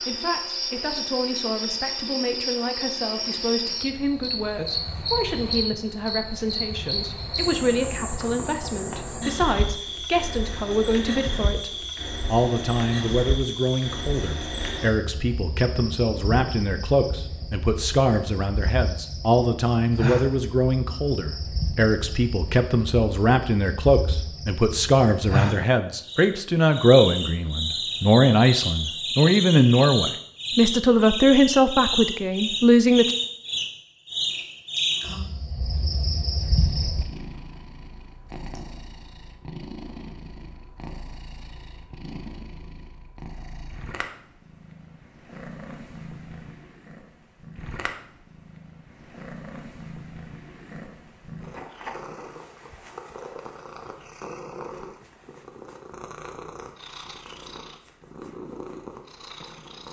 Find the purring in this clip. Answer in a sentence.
You can hear the purring from 36.5 to 59.8 s.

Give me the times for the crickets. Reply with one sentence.
The crickets can be heard from 0.0 to 37.0 s.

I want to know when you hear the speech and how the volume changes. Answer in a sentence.
The speech can be heard from 0.1 to 33.1 s, getting louder.